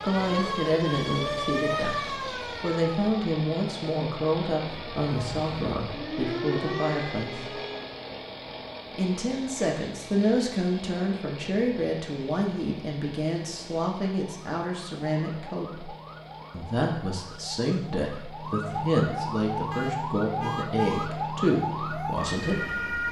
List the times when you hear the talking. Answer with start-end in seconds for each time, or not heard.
0.0-7.5, 8.9-15.9, 16.5-22.9.